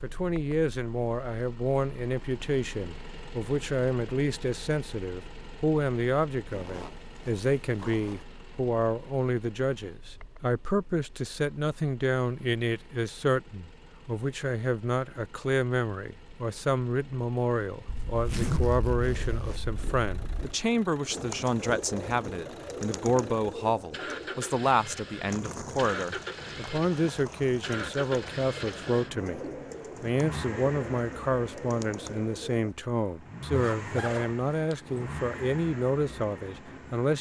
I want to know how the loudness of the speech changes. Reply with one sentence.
The loudness of the speech stays about the same.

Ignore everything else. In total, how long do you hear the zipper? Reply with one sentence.
The zipper can be heard for 6 seconds in total.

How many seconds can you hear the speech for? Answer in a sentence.
You can hear the speech for 37 seconds altogether.